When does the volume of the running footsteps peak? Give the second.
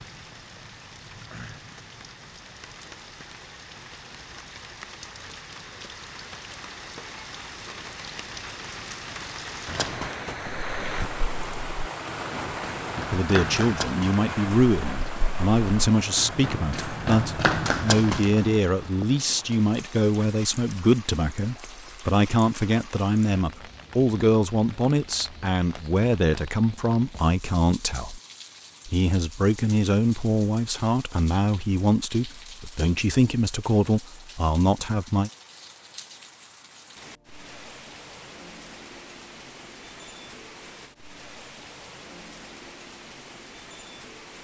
18 s.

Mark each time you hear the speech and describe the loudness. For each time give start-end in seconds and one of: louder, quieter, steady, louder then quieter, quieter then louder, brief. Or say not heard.
13.1-28.2 steady
28.9-35.3 steady.